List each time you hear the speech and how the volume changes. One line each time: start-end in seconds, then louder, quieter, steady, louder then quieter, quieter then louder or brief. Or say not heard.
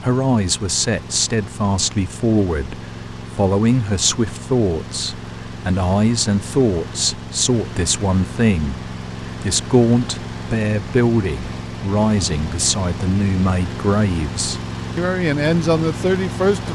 0.0-16.7 steady.